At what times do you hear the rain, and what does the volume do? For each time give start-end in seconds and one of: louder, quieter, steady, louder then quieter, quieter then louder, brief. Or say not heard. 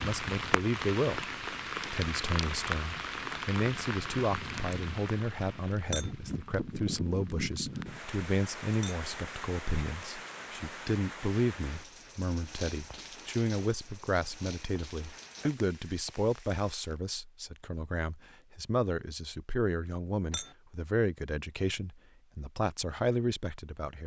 0.0-17.0 quieter.